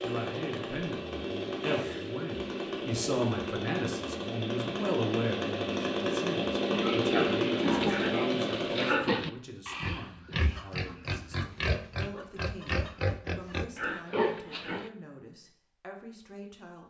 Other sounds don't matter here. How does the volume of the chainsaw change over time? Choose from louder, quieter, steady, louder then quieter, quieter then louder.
louder.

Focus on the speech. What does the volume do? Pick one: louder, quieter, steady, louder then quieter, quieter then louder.
quieter.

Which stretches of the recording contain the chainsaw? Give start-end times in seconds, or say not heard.
0.0-8.9.